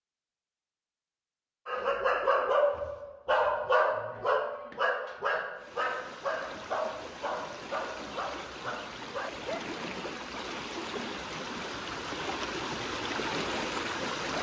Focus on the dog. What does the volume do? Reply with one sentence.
The volume of the dog goes down.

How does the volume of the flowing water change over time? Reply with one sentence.
The loudness of the flowing water goes up.